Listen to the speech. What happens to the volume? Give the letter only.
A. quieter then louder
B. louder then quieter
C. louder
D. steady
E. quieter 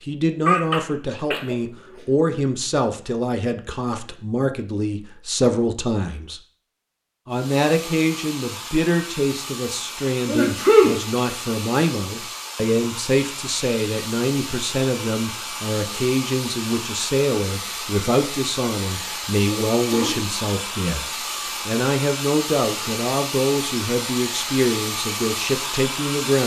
D.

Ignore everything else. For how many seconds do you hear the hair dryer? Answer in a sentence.
The hair dryer can be heard for 19 seconds in total.